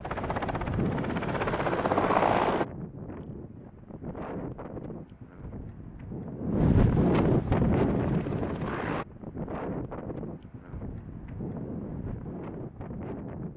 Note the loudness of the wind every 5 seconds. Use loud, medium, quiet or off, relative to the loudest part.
medium, loud, medium.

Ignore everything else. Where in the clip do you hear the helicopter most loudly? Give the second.
2 s.